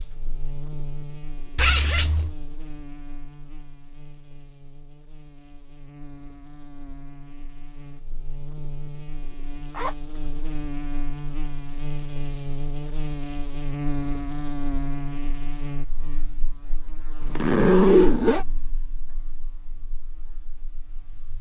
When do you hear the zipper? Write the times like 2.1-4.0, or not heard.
1.6-2.4, 9.7-10.2, 17.2-18.4.